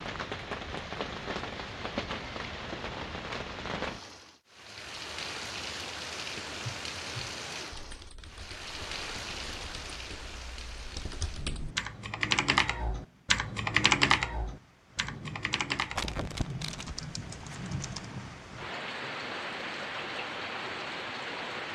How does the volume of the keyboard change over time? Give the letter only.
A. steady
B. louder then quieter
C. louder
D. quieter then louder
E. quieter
B.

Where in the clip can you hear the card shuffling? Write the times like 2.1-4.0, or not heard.
15.9-17.6.